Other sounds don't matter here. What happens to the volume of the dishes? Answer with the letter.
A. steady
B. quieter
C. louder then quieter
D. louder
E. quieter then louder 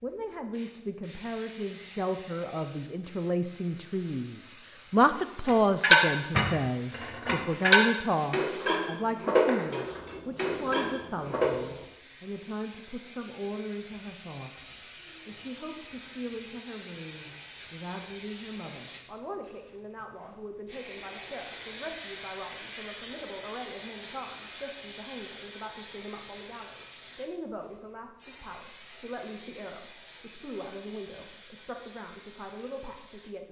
B.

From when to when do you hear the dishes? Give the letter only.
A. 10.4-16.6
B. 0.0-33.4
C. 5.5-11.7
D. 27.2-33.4
C.